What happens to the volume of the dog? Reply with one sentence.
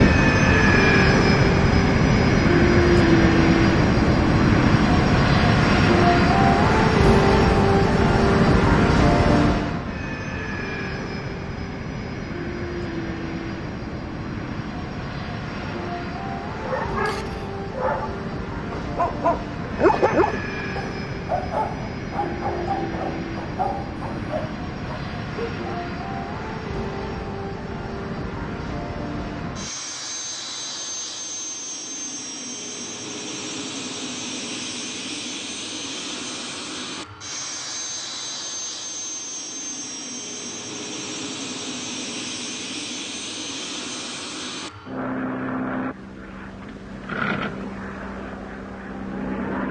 The loudness of the dog goes up, then down.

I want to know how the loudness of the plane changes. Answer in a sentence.
The loudness of the plane goes down.